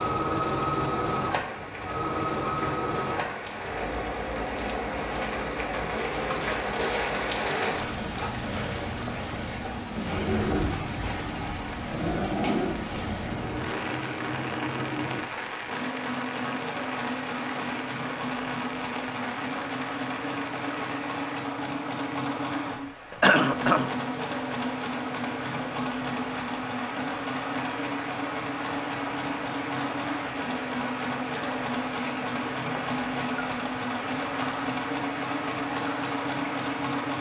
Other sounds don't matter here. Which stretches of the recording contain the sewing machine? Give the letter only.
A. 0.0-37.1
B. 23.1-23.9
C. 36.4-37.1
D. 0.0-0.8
A.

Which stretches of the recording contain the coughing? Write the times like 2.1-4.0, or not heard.
23.1-23.9.